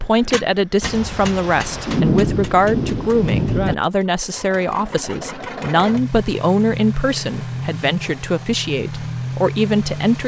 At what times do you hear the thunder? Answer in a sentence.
The thunder can be heard from 0.8 to 3.8 s.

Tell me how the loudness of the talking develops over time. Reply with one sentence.
The volume of the talking stays about the same.